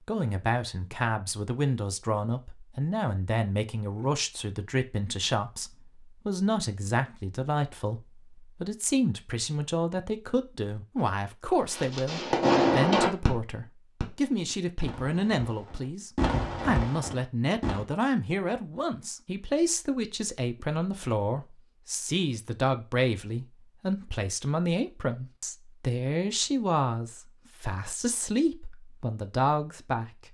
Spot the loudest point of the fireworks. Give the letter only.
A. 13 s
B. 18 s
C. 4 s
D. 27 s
A.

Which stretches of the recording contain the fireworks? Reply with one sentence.
The fireworks can be heard from 11.7 to 17.9 s.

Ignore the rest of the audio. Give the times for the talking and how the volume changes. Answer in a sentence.
The talking can be heard from 0.1 to 30.2 s, at a steady volume.